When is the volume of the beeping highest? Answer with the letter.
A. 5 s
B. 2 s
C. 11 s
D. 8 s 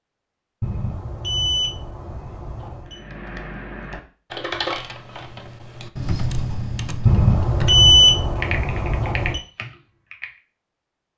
D.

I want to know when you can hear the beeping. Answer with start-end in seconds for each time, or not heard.
0.6-3.0, 7.0-9.4.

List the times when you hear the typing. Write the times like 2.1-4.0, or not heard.
2.9-10.3.